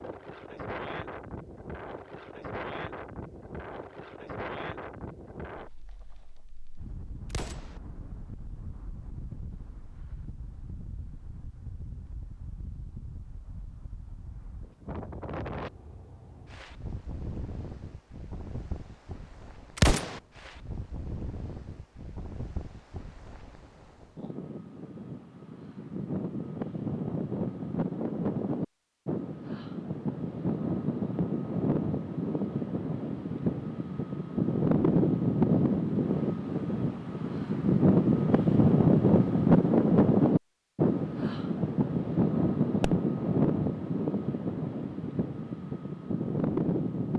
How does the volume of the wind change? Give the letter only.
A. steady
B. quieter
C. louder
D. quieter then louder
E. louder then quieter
C.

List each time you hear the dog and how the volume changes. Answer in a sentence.
The dog can't be heard in this clip.